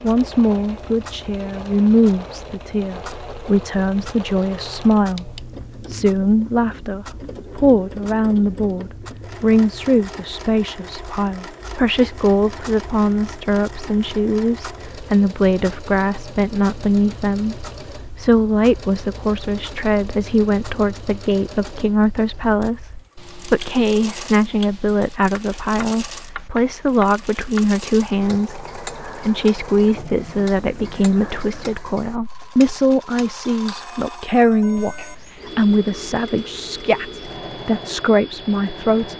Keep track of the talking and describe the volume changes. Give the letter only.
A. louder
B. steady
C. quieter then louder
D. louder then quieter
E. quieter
B.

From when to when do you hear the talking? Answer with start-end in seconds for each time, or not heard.
0.0-39.1.